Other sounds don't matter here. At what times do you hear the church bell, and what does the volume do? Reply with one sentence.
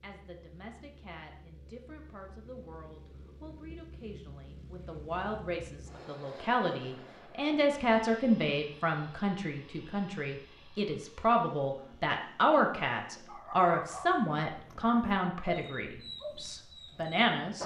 The church bell can't be heard in this clip.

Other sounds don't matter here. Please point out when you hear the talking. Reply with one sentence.
You can hear the talking from 0.0 to 17.6 s.